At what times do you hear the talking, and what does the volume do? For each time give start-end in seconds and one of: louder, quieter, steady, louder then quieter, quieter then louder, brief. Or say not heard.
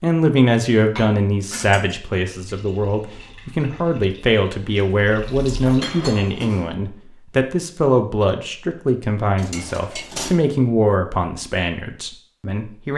0.0-12.9 steady.